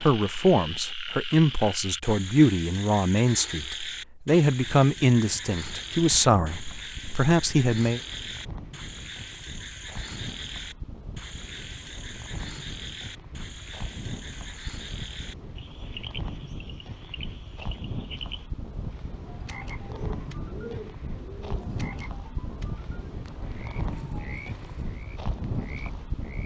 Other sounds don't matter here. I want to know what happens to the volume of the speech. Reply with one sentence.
The loudness of the speech stays about the same.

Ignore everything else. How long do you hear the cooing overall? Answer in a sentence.
You can hear the cooing for 2 seconds altogether.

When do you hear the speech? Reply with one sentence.
The speech can be heard from 0.0 to 8.0 s.